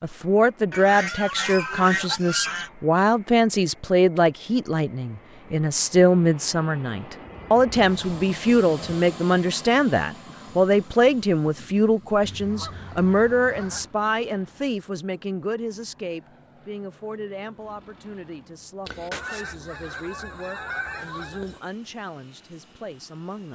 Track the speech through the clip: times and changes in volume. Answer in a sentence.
The speech can be heard from 0.0 to 23.4 s, getting quieter.